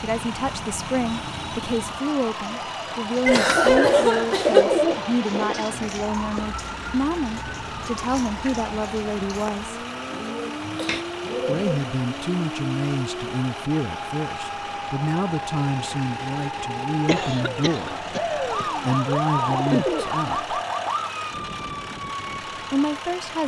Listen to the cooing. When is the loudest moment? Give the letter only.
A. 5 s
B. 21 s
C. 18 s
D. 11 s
A.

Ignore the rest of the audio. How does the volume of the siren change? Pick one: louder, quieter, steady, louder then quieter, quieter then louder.
louder.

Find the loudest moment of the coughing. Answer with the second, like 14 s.
4 s.